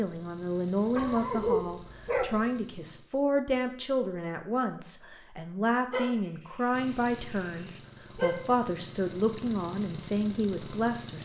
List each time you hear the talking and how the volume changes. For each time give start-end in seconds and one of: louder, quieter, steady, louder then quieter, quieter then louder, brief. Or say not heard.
0.0-11.1 steady.